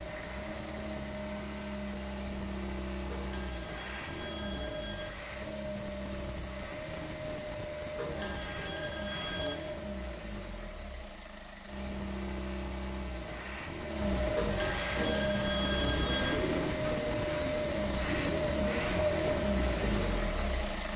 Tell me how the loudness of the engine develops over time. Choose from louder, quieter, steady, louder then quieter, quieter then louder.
louder.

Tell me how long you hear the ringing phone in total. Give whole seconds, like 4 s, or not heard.
6 s.